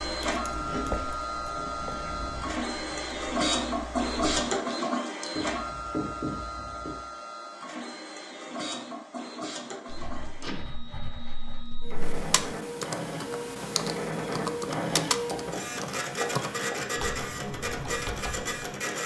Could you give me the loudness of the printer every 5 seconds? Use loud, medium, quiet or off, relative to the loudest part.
loud, medium, medium, loud.